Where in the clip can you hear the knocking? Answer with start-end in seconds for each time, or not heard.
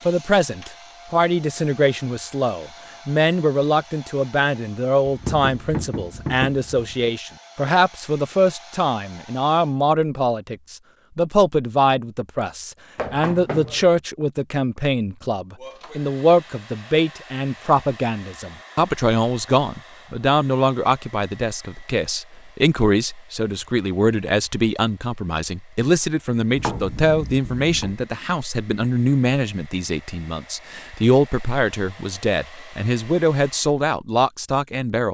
5.0-7.1, 12.9-13.8, 26.6-27.9.